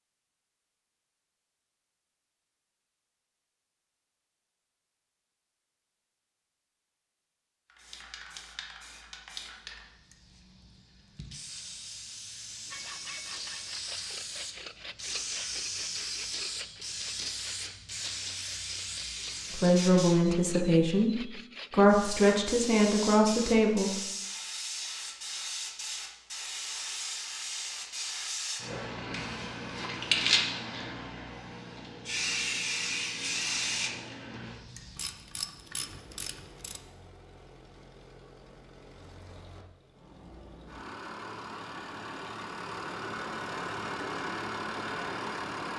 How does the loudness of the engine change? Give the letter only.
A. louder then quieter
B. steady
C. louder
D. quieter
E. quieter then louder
C.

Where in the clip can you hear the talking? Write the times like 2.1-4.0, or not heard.
19.5-24.0.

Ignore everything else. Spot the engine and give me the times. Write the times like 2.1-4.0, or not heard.
35.9-45.7.